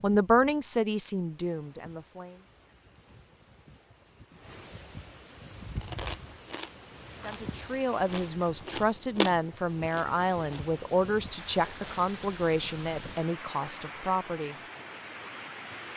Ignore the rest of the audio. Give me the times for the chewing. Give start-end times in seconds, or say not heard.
5.5-10.6.